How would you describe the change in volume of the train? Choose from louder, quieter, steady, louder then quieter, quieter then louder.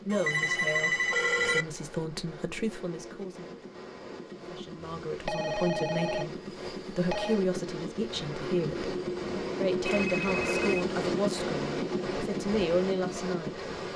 louder.